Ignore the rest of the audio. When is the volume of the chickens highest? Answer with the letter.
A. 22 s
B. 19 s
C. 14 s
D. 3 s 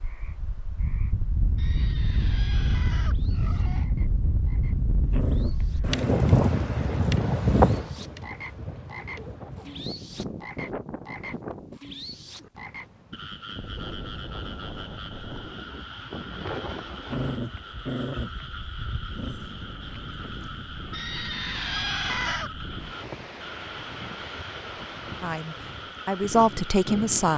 A.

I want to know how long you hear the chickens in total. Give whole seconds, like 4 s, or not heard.
4 s.